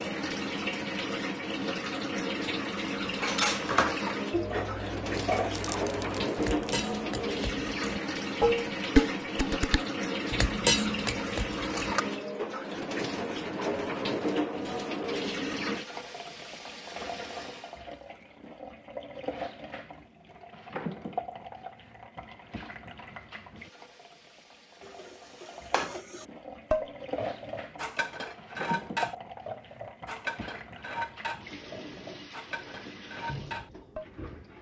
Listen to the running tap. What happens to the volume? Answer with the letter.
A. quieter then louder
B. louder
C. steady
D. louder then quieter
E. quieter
E.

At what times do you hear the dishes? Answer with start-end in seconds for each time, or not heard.
2.8-12.0, 24.8-34.0.